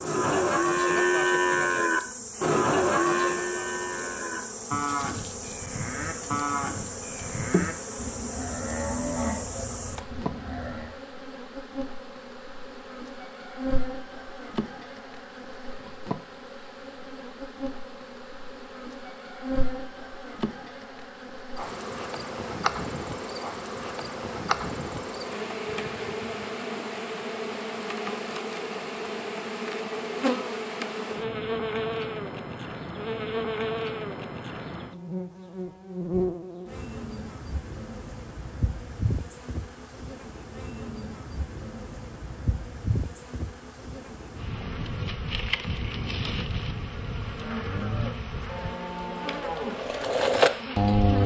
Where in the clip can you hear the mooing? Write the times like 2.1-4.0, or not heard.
0.0-10.9, 47.2-51.2.